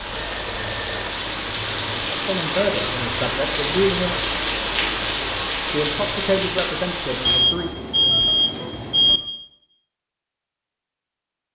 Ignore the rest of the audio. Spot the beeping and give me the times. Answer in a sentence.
You can hear the beeping from 0.1 to 1.1 s and from 7.2 to 9.2 s.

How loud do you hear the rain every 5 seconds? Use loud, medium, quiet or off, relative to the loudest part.
loud, loud, off.